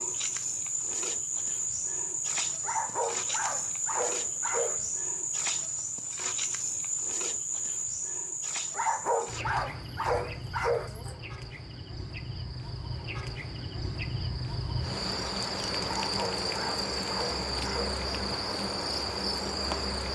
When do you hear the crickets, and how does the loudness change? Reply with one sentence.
The crickets can be heard from 0.0 to 20.1 s, getting quieter then louder.